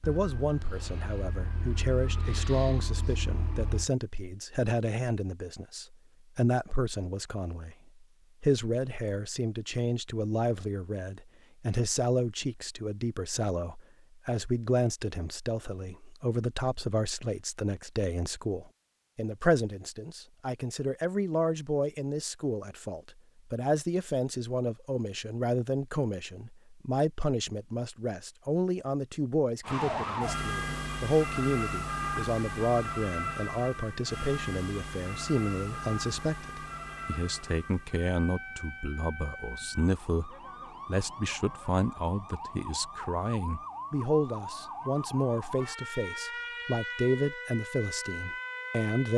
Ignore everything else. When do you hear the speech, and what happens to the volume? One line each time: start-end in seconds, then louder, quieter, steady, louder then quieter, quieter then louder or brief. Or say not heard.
0.1-49.1 steady.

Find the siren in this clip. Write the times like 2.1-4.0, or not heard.
0.0-3.9, 29.6-49.1.